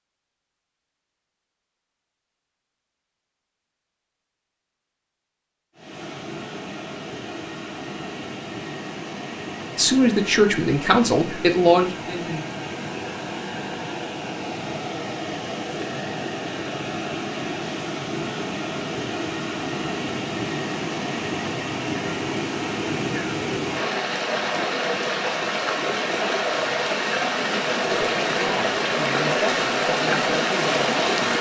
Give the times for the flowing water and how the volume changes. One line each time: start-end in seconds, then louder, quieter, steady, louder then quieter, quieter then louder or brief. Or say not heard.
5.8-31.3 louder.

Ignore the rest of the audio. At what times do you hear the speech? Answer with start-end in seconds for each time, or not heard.
9.8-12.4, 27.9-31.3.